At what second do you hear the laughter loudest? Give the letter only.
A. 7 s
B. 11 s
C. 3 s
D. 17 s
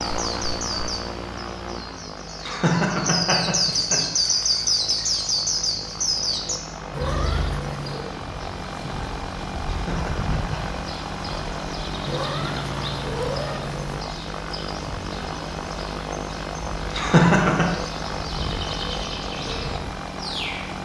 D.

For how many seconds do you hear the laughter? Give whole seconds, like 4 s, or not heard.
3 s.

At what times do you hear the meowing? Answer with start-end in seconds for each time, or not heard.
6.9-8.2, 12.1-14.1.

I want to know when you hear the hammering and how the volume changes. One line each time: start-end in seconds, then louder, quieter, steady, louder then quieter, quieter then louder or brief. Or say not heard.
not heard.